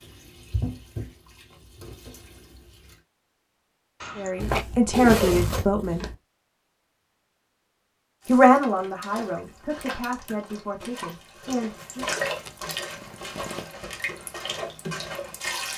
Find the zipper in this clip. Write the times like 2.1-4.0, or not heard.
4.4-6.2, 11.8-13.7.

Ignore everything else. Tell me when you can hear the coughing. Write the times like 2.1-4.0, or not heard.
4.0-4.7.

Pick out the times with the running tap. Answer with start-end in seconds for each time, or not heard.
0.0-3.0, 8.2-15.7.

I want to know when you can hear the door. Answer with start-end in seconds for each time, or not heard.
not heard.